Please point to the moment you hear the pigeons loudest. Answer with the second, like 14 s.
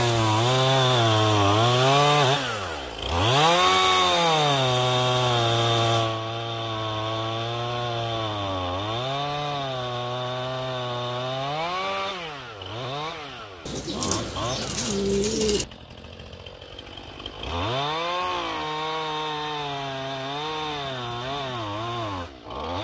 15 s.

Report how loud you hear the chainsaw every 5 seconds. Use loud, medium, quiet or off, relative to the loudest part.
loud, medium, medium, medium, medium.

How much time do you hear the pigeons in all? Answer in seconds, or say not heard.
2 s.